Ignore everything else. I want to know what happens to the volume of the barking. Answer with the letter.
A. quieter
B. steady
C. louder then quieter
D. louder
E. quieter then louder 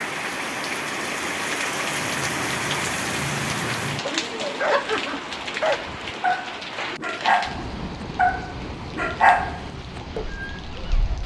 D.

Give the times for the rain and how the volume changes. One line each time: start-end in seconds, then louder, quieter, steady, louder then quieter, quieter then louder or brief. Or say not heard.
0.0-11.2 quieter.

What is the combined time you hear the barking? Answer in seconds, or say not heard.
9 s.